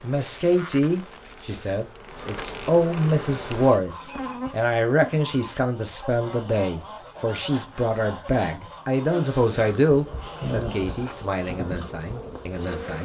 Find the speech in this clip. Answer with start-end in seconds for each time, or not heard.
0.0-13.0.